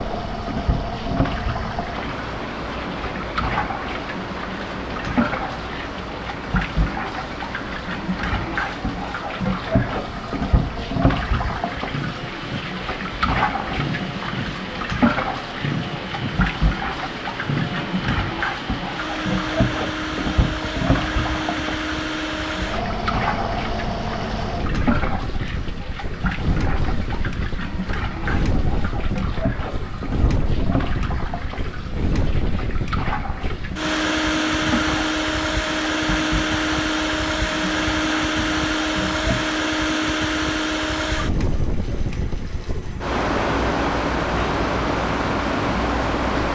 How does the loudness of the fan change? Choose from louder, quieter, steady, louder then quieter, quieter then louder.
louder.